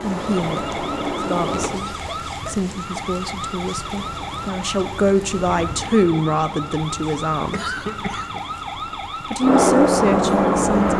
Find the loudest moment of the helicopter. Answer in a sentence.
The loudest moment of the helicopter is at 10 seconds.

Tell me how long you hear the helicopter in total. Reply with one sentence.
The helicopter can be heard for 3 seconds in total.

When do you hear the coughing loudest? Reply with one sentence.
The loudest moment of the coughing is at 8 seconds.